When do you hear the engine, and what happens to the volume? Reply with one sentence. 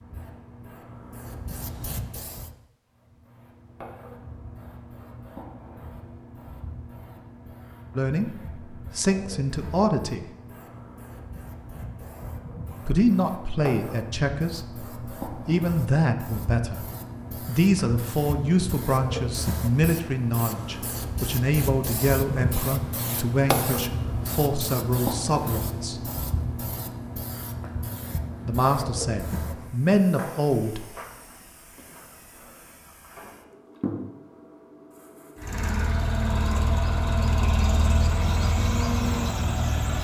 You can hear the engine from 35.4 to 39.9 s, at a steady volume.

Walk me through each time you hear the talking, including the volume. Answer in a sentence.
The talking can be heard briefly from 8.0 to 10.2 s; from 12.8 to 16.9 s, getting quieter then louder; from 17.4 to 26.0 s, at a steady volume; and briefly from 28.4 to 30.8 s.